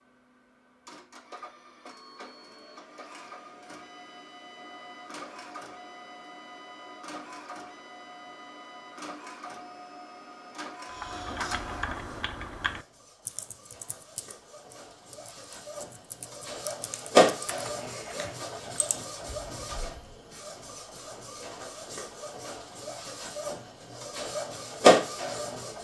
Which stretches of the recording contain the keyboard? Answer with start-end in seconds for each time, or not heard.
10.8-20.1.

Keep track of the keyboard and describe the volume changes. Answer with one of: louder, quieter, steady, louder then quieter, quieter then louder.
quieter then louder.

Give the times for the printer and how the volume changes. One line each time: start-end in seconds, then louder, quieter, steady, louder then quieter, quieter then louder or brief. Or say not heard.
0.0-25.7 louder.